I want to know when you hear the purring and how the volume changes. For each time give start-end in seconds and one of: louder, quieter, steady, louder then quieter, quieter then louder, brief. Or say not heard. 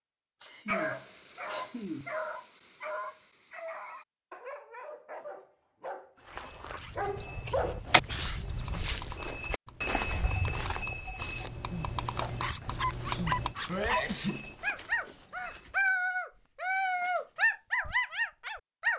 not heard.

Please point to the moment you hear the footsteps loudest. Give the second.
10 s.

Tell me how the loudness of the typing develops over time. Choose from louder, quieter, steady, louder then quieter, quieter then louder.
quieter then louder.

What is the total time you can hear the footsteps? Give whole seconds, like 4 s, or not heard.
10 s.